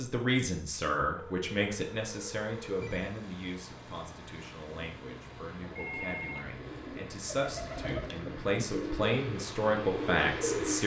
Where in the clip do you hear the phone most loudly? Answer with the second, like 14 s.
6 s.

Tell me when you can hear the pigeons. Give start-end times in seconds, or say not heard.
4.7-10.8.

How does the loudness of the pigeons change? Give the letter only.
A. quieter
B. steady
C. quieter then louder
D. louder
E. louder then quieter
D.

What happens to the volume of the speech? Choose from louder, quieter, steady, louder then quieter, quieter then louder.
quieter then louder.